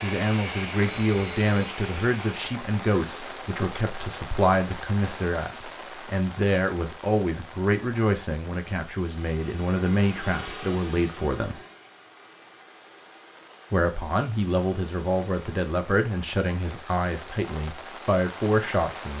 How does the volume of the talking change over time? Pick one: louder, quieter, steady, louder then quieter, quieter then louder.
steady.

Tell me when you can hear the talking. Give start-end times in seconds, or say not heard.
0.0-11.6, 13.7-19.1.